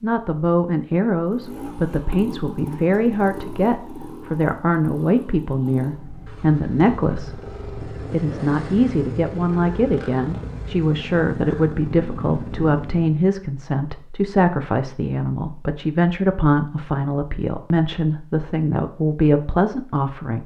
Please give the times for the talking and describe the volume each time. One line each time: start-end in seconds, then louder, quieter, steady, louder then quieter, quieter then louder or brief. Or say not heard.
0.0-20.4 steady.